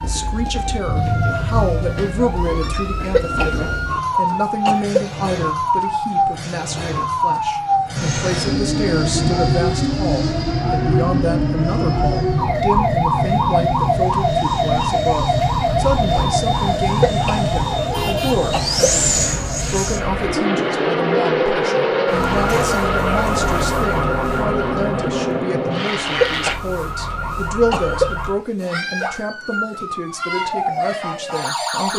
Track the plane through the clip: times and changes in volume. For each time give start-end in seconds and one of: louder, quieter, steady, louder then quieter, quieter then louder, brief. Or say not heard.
8.0-26.6 steady.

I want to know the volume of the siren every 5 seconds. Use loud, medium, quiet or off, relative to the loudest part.
loud, loud, loud, loud, loud, medium, loud.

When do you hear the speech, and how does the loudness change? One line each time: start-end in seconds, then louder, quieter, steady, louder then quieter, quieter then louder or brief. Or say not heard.
0.0-31.9 steady.